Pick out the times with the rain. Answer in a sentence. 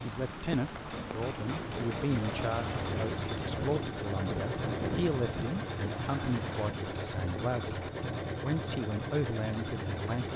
The rain can be heard from 0.0 to 6.7 s.